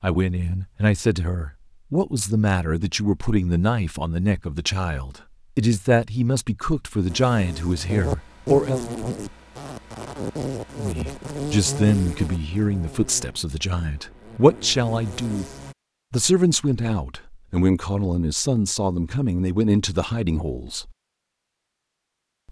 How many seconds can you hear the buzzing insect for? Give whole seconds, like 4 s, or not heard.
9 s.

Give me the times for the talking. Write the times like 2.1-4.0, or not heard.
0.0-8.8, 10.8-15.5, 16.1-20.9.